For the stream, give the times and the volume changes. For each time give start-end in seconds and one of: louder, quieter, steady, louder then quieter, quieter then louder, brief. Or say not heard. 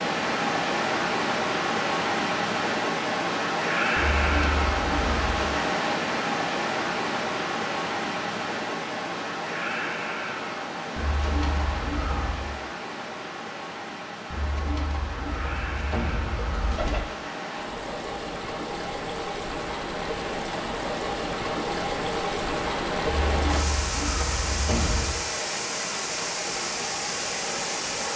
0.0-28.1 quieter then louder.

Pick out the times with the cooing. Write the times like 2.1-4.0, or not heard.
4.0-5.5, 10.9-12.5, 14.3-17.1, 23.1-25.2.